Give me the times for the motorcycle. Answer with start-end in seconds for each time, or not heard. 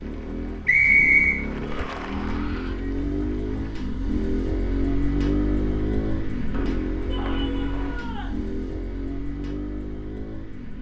0.0-10.7.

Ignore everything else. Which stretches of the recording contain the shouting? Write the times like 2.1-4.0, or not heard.
1.6-2.8, 7.0-8.4.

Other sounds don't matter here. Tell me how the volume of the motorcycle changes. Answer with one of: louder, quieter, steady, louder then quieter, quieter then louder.
louder then quieter.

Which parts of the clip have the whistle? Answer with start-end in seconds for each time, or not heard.
0.7-1.4, 6.5-8.0.